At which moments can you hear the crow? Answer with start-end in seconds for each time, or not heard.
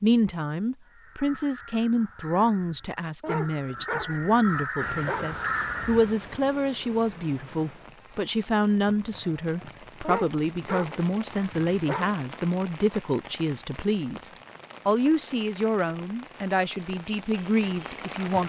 0.8-6.2.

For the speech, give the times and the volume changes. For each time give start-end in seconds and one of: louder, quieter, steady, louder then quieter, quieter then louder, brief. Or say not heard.
0.0-18.4 steady.